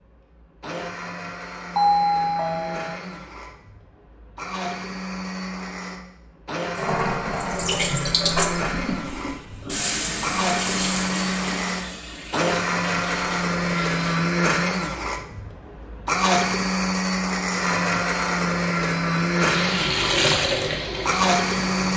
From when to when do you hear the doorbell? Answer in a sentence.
You can hear the doorbell from 1.8 to 3.0 s.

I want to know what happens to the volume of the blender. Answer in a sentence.
The volume of the blender goes up.